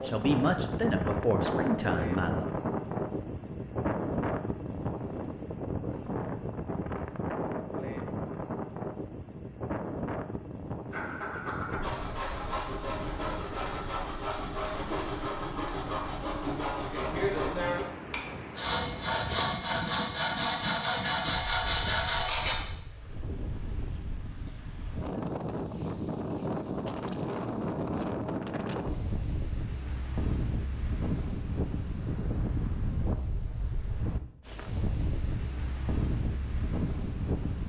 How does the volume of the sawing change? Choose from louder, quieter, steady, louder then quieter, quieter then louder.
louder.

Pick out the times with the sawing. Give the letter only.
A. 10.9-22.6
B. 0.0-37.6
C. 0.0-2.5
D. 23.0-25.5
A.